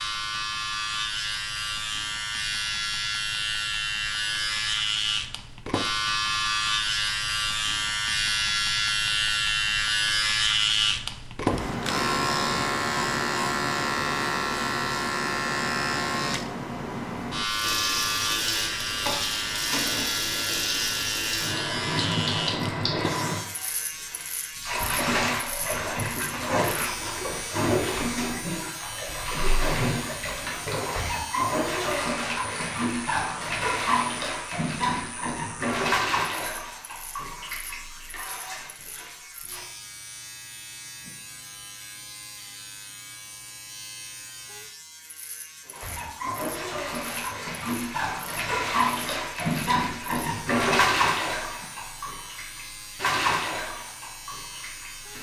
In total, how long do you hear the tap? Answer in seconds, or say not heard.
32 s.